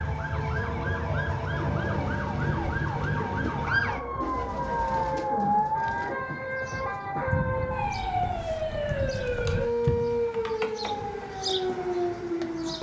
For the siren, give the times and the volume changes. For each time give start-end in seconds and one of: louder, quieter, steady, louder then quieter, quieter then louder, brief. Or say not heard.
0.0-12.7 steady.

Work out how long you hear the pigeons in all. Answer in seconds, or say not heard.
11 s.